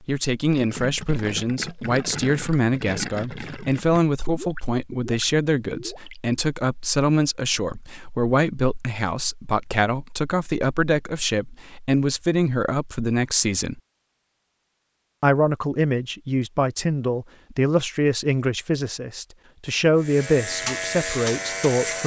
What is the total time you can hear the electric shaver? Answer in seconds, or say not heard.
2 s.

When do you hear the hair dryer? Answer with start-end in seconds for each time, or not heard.
not heard.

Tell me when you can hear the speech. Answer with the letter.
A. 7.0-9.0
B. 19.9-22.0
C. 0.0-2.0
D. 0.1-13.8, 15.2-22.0
D.